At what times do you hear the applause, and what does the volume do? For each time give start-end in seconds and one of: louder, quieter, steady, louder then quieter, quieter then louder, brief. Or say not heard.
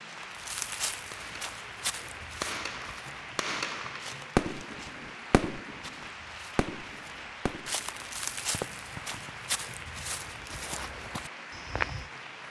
0.0-12.4 steady.